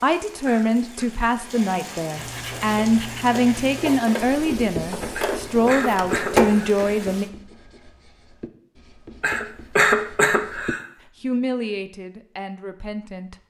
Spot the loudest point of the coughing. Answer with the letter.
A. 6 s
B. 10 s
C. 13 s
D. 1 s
B.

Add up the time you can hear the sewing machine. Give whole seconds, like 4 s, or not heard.
4 s.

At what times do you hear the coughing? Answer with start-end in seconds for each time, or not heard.
0.5-1.1, 5.2-6.8, 9.2-10.8.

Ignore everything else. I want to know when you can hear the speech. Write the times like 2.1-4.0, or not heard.
0.0-7.2, 11.2-13.3.